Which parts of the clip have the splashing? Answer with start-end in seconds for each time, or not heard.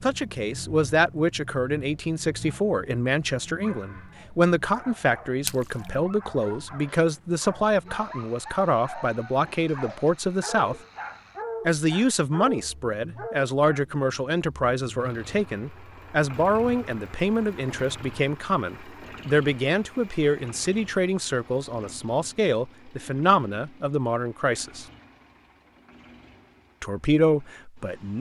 5.5-5.9.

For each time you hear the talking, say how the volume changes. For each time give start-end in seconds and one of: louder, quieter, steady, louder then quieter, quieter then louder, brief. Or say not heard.
0.0-10.8 steady
11.7-24.9 steady
26.8-28.1 brief.